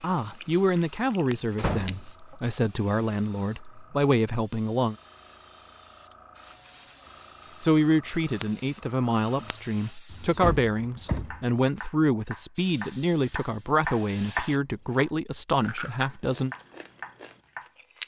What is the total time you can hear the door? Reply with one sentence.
You can hear the door for 2 seconds altogether.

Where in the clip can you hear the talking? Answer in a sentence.
You can hear the talking from 0.0 to 5.0 s and from 7.6 to 16.6 s.